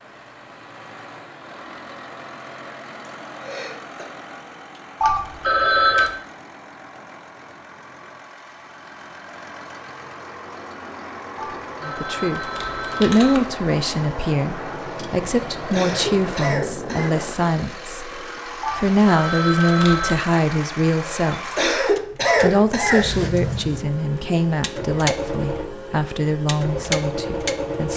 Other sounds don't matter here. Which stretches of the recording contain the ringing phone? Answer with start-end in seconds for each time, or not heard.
5.0-6.1, 11.3-13.4, 18.6-20.2.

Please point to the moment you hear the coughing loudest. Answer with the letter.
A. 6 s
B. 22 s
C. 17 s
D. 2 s
B.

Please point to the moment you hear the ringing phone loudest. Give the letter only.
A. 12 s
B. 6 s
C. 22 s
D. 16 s
B.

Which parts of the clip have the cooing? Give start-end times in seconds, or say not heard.
not heard.